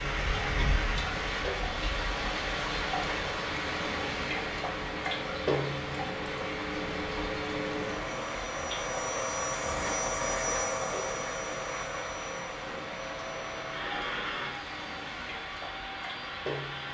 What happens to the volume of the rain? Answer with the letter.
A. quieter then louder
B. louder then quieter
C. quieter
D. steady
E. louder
C.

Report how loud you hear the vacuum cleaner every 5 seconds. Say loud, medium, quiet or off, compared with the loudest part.
medium, loud, loud, medium.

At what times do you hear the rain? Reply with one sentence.
You can hear the rain from 0.0 to 16.8 s.